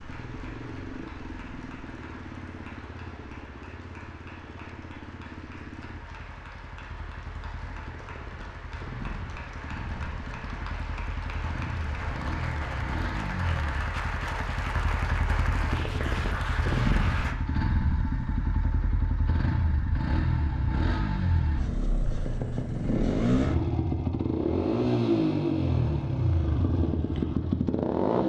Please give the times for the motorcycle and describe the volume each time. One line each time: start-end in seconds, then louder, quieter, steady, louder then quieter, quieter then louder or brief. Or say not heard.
0.0-28.2 louder.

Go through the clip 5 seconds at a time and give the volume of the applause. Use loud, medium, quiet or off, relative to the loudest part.
quiet, medium, loud, loud, off, off.